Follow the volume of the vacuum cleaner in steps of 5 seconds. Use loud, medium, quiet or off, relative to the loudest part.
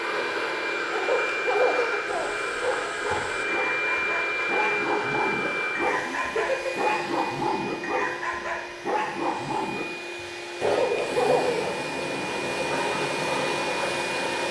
loud, medium, loud.